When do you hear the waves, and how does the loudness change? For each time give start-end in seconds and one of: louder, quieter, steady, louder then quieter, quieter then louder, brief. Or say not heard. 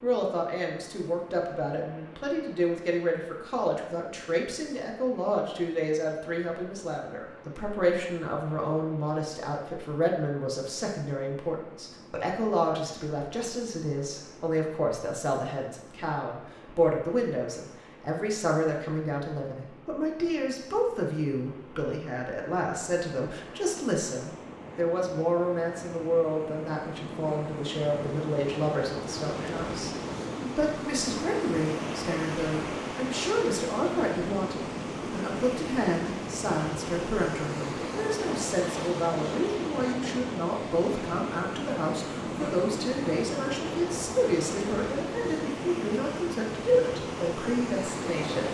0.0-48.4 louder.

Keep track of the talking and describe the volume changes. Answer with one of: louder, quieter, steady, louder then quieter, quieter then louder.
steady.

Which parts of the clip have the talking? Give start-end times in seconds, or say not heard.
0.0-48.4.